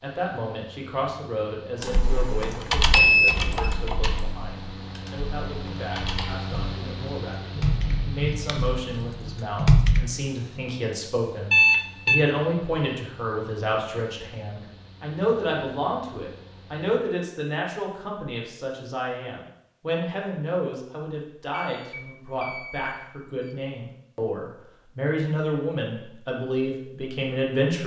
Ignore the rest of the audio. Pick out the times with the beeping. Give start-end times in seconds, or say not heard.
2.9-3.7, 11.5-12.2, 21.5-23.6.